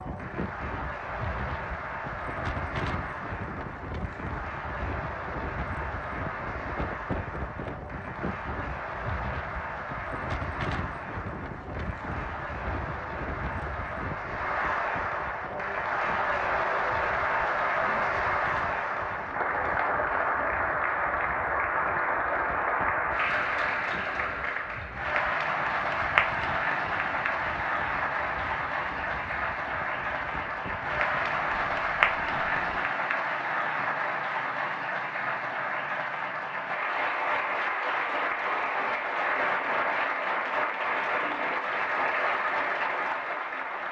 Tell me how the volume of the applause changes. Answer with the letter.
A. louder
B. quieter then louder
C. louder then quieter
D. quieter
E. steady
A.